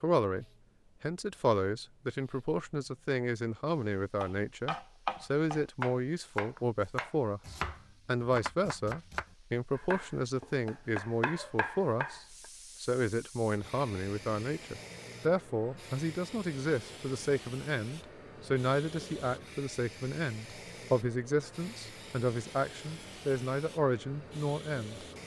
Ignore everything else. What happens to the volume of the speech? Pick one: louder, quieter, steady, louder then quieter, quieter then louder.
steady.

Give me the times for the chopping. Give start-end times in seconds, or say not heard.
4.2-12.4.